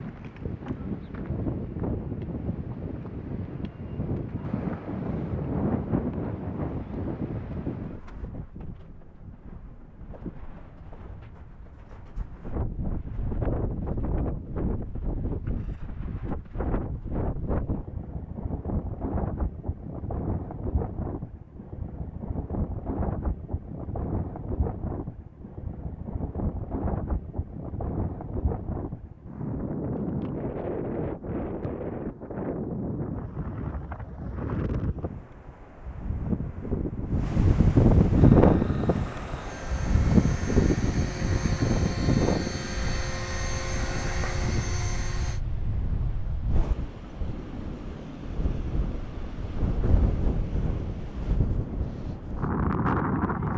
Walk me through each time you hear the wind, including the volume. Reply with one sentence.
You can hear the wind from 0.0 to 53.5 s, getting louder then quieter.